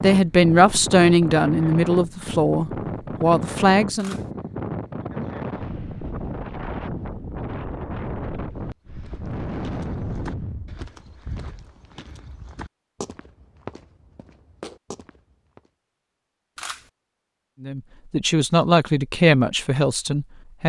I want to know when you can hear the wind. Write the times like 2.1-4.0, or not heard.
0.0-11.8.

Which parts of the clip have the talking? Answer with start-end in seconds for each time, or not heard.
0.0-4.2, 17.6-20.6.